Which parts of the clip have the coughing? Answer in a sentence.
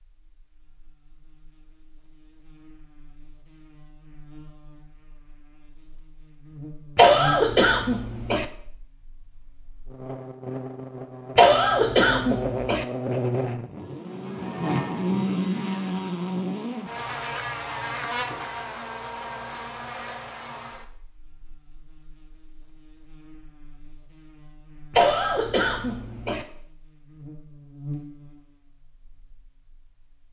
The coughing can be heard from 7.0 to 8.4 s, from 11.3 to 12.8 s and from 24.9 to 26.4 s.